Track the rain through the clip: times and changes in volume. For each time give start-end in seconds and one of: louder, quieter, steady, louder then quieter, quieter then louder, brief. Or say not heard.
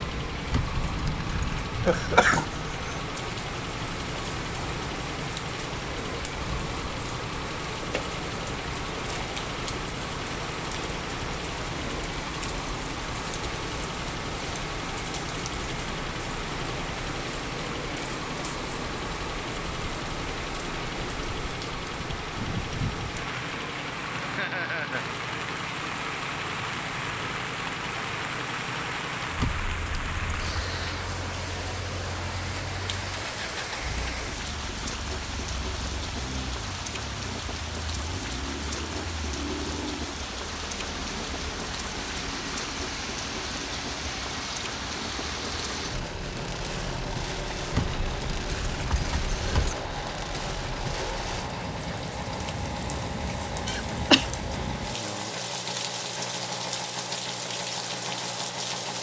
0.0-58.9 steady.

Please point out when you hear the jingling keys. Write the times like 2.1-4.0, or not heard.
0.5-1.7, 29.4-30.7, 47.7-49.8.